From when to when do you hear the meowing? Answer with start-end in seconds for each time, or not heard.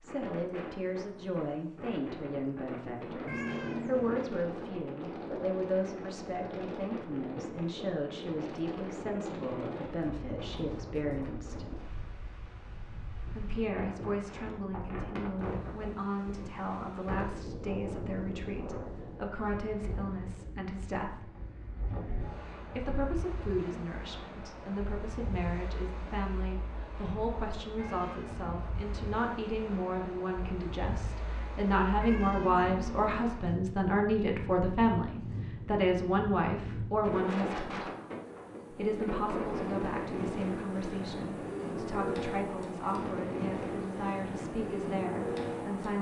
3.2-4.3, 27.8-28.6, 32.0-33.4.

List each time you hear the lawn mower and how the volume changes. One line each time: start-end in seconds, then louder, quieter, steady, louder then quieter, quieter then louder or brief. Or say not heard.
not heard.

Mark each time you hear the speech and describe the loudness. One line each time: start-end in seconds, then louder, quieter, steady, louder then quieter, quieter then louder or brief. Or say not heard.
0.0-11.7 steady
13.3-21.3 steady
22.6-37.9 louder
38.7-45.9 steady.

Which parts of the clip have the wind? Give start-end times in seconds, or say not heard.
0.0-45.9.